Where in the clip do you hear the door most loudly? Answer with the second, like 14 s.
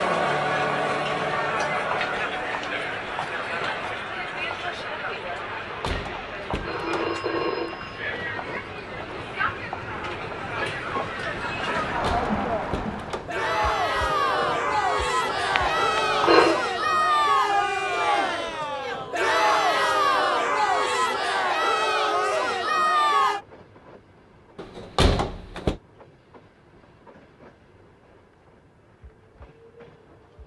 25 s.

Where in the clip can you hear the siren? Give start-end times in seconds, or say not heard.
not heard.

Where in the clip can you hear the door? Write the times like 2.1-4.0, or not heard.
5.7-7.4, 11.8-13.4, 24.6-25.8.